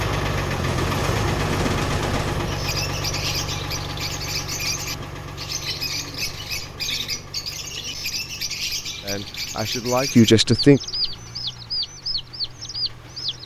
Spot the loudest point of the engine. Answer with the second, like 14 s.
1 s.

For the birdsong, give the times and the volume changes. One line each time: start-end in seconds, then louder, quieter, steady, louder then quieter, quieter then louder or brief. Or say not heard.
2.4-13.4 steady.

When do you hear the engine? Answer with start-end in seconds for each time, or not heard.
0.0-13.4.